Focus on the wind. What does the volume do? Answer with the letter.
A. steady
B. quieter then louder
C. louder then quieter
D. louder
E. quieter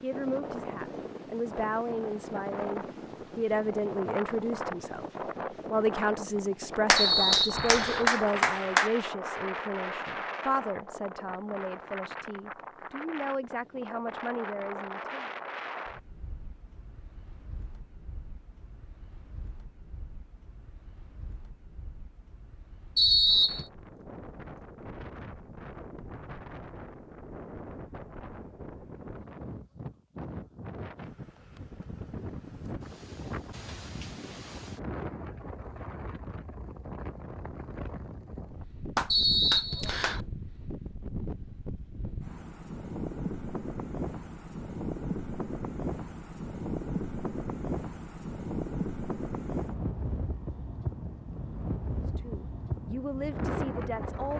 B.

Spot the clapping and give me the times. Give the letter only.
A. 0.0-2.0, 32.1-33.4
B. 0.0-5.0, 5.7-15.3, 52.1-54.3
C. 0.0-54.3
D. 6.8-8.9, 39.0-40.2
D.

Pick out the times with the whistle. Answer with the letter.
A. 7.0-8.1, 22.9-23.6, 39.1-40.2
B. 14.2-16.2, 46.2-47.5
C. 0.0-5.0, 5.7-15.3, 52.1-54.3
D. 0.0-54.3
A.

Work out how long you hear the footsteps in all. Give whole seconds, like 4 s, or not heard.
not heard.